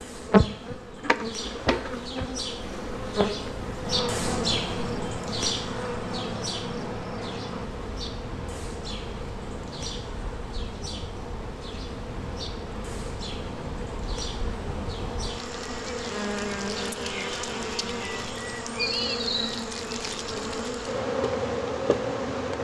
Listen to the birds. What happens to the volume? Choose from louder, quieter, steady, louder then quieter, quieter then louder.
louder then quieter.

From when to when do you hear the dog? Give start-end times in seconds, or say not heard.
not heard.